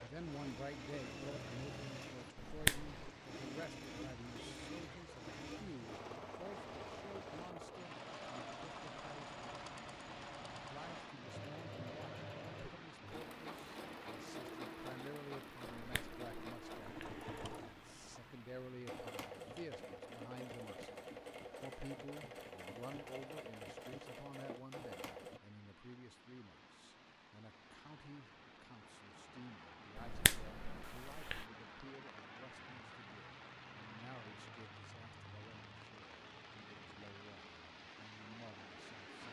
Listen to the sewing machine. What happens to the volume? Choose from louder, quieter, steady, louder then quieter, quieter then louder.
steady.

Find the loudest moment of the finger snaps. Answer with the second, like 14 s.
3 s.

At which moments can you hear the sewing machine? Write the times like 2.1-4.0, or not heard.
0.1-25.4.